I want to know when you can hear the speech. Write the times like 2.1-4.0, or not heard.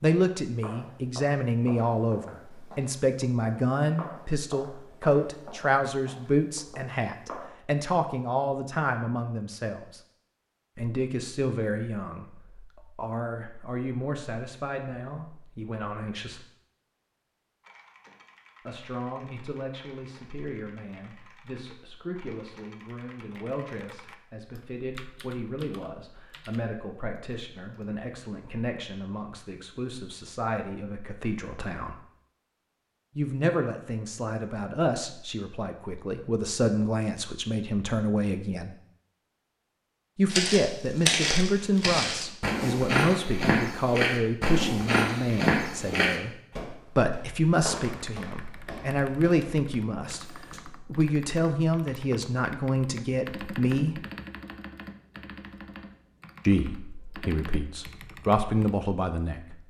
0.0-10.0, 10.8-16.4, 18.6-32.0, 33.1-38.8, 40.1-54.0, 56.5-59.5.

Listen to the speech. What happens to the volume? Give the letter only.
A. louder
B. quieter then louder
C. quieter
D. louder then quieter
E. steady
B.